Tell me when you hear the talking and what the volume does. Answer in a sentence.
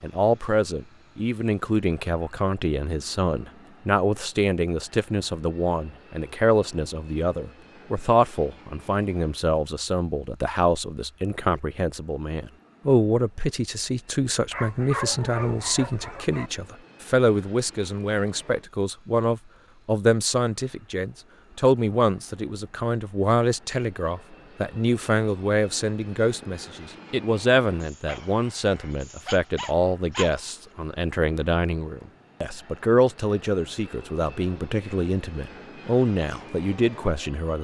You can hear the talking from 0.0 to 37.6 s, at a steady volume.